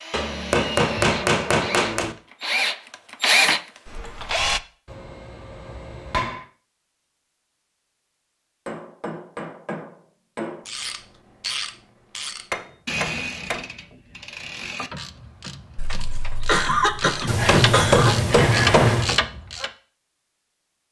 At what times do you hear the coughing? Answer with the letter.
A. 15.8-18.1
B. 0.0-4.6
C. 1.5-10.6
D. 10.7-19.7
A.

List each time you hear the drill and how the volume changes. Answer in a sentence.
You can hear the drill from 0.0 to 4.6 s, getting louder then quieter.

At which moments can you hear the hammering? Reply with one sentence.
The hammering can be heard from 0.1 to 2.1 s, from 4.8 to 6.5 s, from 8.7 to 10.7 s, from 12.5 to 13.7 s and from 17.2 to 19.2 s.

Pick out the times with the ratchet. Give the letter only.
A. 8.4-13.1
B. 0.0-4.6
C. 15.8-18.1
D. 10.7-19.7
D.